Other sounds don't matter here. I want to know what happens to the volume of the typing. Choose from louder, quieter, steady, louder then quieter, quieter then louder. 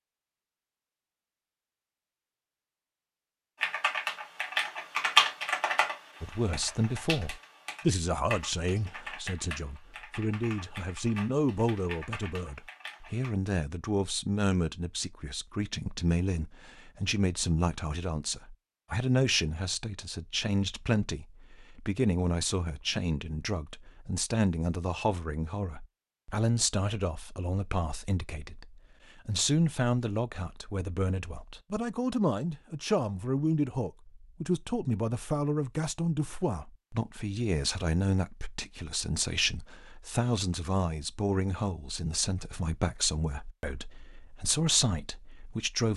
quieter.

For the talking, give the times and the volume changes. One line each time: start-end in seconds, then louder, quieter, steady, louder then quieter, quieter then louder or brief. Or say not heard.
6.2-45.9 steady.